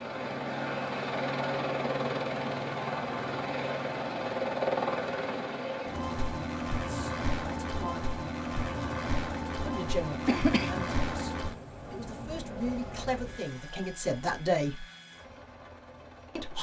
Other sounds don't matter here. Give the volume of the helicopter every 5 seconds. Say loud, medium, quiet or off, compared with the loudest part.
loud, loud, medium, quiet.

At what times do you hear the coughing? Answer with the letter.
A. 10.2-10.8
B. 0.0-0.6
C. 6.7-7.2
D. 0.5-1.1
A.